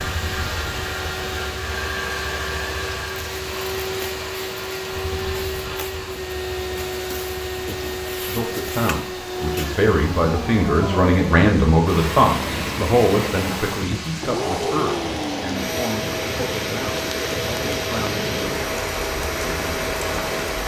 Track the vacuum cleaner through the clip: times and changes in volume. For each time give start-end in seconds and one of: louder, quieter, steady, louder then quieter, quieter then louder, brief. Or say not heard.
0.0-20.6 steady.